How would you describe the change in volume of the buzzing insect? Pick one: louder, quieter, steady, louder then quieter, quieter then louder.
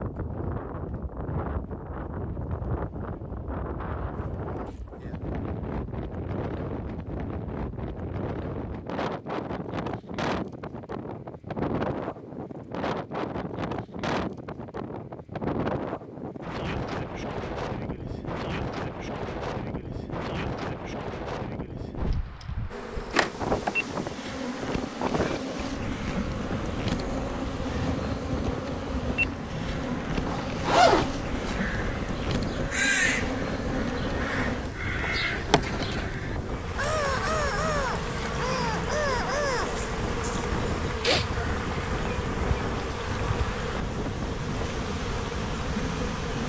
steady.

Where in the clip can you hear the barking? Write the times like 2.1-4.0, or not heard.
not heard.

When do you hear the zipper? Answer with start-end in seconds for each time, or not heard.
30.2-31.6.